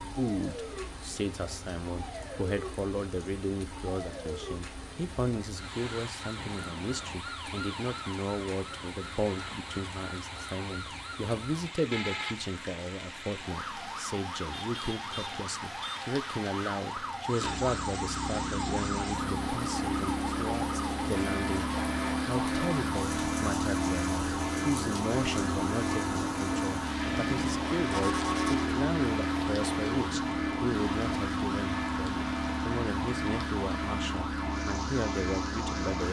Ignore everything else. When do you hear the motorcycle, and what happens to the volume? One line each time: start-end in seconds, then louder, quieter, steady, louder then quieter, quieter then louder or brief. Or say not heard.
17.4-36.0 steady.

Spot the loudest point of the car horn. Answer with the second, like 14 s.
28 s.